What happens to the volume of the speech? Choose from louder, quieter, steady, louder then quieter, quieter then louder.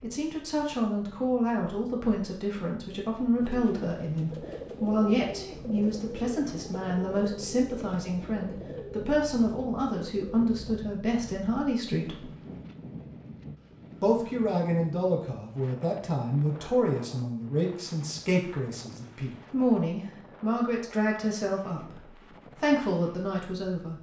steady.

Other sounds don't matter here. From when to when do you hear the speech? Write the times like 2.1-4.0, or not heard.
0.0-12.2, 14.0-23.9.